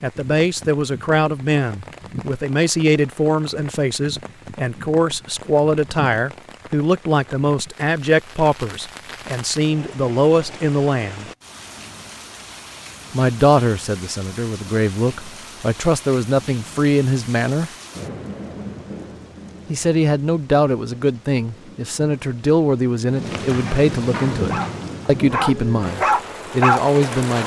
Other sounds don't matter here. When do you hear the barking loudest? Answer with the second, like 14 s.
27 s.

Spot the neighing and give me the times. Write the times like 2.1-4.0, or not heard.
not heard.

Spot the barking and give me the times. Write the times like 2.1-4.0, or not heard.
24.5-27.0.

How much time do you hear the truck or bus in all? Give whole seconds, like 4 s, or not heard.
not heard.